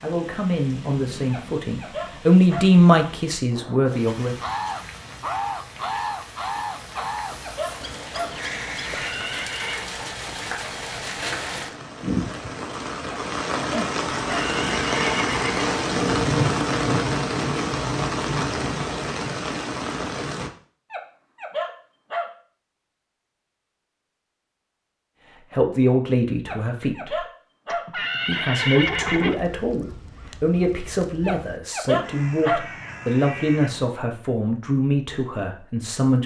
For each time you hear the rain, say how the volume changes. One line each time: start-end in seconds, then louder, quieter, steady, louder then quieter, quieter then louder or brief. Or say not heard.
0.0-20.5 louder.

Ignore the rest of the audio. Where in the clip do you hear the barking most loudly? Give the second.
32 s.